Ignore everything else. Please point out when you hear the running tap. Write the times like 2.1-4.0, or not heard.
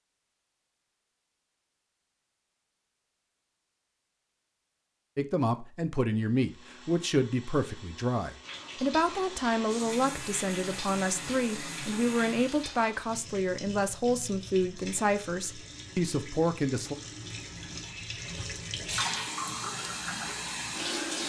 8.4-21.2.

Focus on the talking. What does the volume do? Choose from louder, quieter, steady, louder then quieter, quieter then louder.
steady.